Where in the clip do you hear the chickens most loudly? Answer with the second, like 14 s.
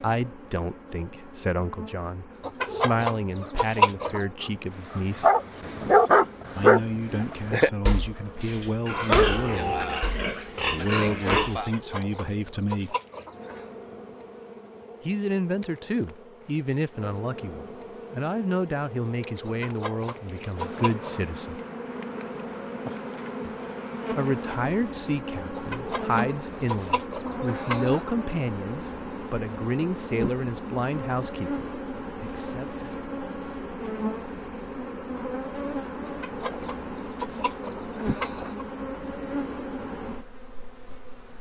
4 s.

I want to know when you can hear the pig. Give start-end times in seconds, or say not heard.
8.8-11.8.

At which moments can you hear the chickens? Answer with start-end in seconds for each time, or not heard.
2.4-4.2, 11.6-13.7, 19.4-21.2, 25.6-28.1, 36.0-38.6.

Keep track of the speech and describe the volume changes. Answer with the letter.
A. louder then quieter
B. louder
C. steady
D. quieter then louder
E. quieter
C.